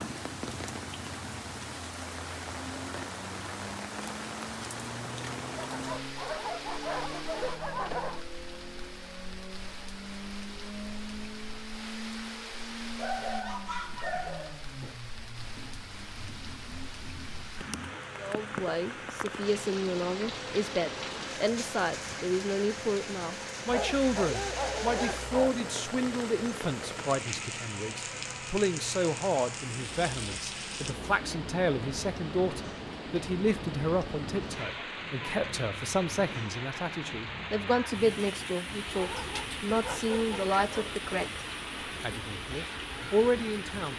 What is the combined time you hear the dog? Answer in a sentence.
The dog can be heard for 8 seconds in total.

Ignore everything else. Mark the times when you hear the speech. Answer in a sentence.
The speech can be heard from 18.1 to 41.4 s and from 42.0 to 43.9 s.